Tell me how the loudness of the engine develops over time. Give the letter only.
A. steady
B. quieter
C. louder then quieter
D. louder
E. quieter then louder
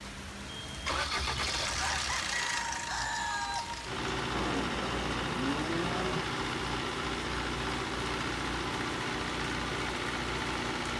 A.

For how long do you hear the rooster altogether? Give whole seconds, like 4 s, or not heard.
2 s.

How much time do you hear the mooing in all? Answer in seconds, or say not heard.
2 s.